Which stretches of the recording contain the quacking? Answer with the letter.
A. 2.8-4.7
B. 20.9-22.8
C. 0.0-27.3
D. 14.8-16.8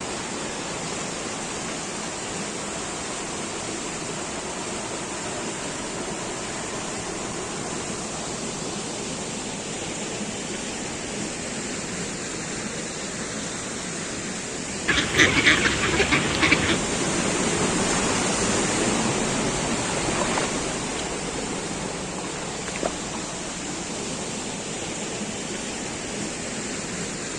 D.